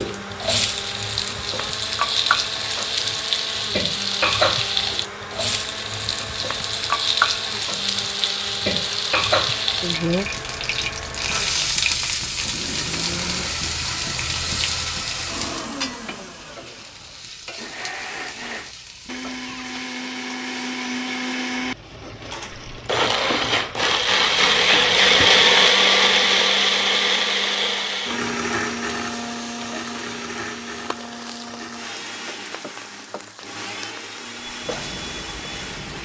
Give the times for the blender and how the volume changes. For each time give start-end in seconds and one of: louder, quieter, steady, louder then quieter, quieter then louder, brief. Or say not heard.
0.0-35.9 louder then quieter.